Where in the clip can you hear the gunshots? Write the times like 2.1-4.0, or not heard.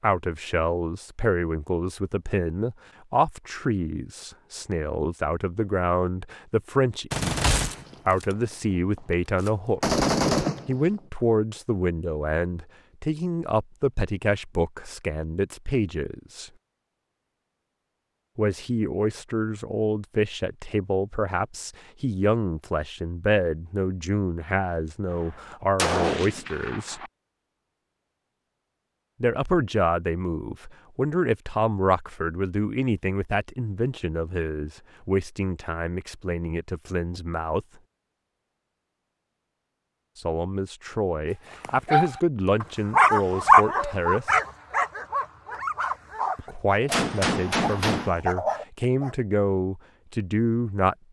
7.1-8.2, 9.4-10.8, 25.8-27.1, 46.9-48.1.